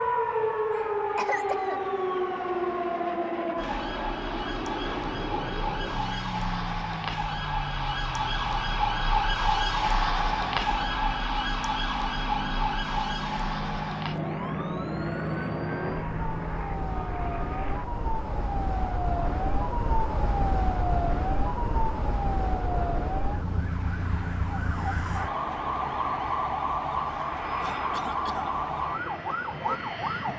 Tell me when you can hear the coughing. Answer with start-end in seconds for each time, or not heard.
0.7-1.9, 27.1-28.6.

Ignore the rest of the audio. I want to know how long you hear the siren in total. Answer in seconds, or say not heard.
30 s.